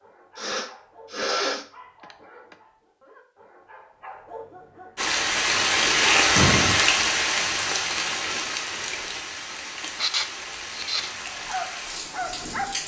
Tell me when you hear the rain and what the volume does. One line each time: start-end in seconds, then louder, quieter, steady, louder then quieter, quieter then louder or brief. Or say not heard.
5.0-12.8 quieter.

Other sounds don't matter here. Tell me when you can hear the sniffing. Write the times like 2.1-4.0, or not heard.
0.3-2.5, 6.0-6.8, 9.9-11.1.